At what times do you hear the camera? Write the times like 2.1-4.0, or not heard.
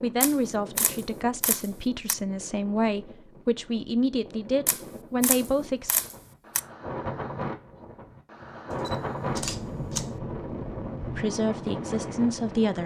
0.2-2.1, 4.7-6.6, 8.8-10.1.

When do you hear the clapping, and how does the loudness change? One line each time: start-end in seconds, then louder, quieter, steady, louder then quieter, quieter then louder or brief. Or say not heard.
not heard.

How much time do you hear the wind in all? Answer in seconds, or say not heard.
13 s.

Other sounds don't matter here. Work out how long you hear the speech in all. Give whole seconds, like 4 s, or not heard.
8 s.